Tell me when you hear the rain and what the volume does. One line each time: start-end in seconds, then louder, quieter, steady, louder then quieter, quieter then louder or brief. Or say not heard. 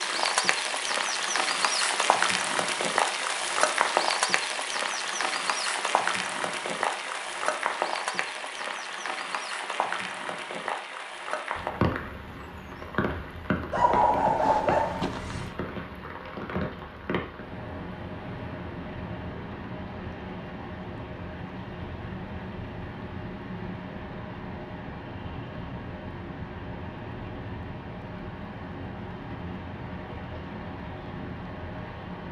0.0-32.2 quieter.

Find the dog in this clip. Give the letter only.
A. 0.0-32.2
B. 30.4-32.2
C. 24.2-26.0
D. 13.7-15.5
D.